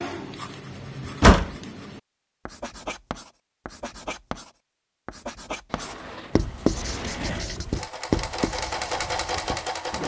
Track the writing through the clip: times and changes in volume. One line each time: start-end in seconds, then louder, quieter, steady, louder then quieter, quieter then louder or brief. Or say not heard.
0.0-10.0 louder.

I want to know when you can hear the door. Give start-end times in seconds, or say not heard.
1.1-1.6, 5.7-7.5.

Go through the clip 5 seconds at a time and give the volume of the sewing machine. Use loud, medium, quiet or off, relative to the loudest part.
off, loud.